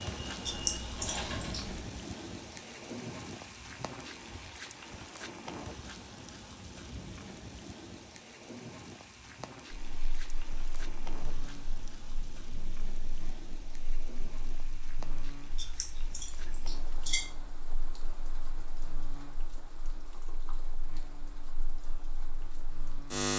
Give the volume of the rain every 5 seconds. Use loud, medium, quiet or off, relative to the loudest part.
loud, loud, medium, medium, quiet.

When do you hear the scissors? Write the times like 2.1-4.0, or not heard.
0.5-1.8, 15.6-17.2.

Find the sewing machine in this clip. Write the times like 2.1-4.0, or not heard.
0.0-1.8.